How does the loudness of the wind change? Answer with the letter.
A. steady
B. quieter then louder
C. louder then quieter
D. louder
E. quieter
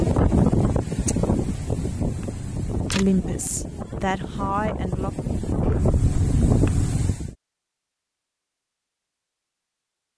B.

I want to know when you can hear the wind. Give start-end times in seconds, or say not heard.
0.0-7.3.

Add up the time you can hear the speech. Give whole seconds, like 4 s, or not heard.
2 s.